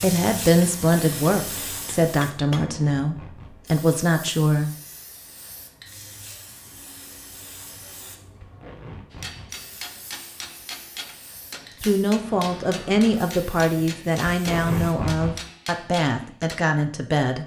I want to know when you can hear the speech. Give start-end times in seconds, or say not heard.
0.0-4.8, 11.8-17.4.